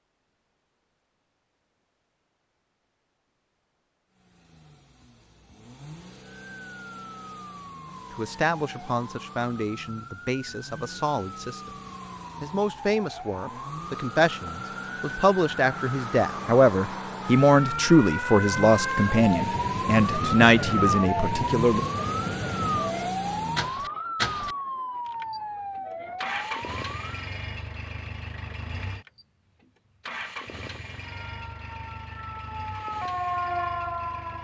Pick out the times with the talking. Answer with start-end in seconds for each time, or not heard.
8.1-11.8, 12.4-21.9.